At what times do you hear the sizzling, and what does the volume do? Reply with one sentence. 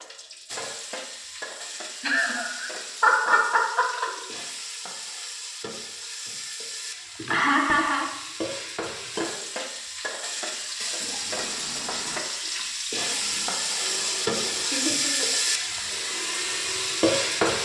You can hear the sizzling from 0.0 to 17.5 s, getting louder.